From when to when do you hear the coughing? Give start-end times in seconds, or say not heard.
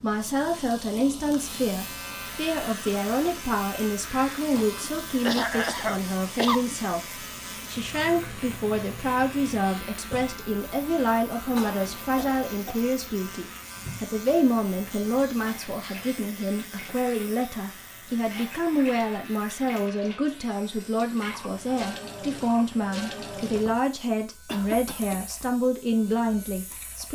4.5-6.6, 11.6-12.8, 24.4-25.2.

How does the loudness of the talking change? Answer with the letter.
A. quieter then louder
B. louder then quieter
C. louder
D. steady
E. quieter
D.